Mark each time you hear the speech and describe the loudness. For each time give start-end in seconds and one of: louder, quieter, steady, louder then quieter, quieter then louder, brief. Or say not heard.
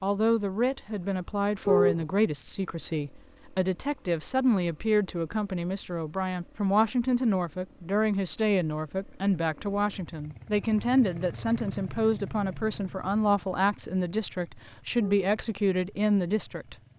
0.0-16.9 steady.